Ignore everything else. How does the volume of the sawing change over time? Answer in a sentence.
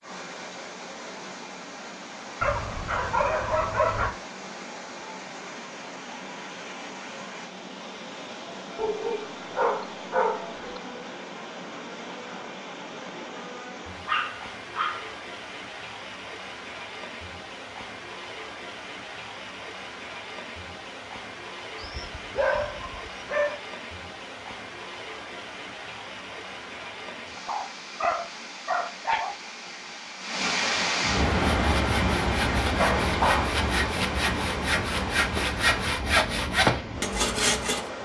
The volume of the sawing goes up.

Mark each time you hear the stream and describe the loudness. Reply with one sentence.
You can hear the stream from 0.0 to 38.0 s, getting louder.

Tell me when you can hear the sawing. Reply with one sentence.
The sawing can be heard from 31.3 to 37.9 s.